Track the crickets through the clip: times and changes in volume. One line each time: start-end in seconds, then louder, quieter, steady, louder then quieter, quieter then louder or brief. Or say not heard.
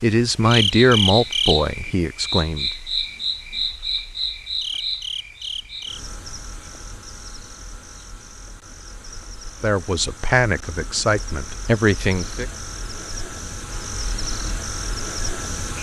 0.0-15.7 quieter then louder.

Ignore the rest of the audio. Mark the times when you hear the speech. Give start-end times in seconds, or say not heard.
0.0-2.7, 9.6-12.4.